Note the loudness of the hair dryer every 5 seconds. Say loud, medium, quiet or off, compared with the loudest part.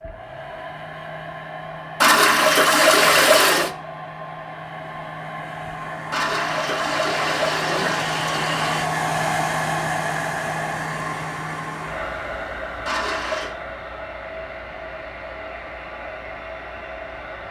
medium, loud, loud, medium.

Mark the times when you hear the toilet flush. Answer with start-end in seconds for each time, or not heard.
2.0-3.7, 6.1-8.8, 12.8-13.6.